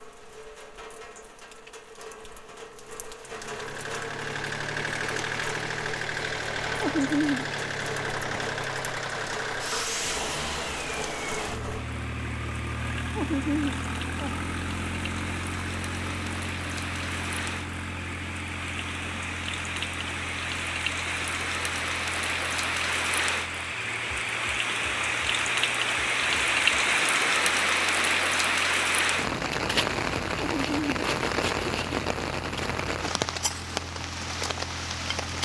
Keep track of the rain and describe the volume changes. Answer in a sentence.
The loudness of the rain goes up.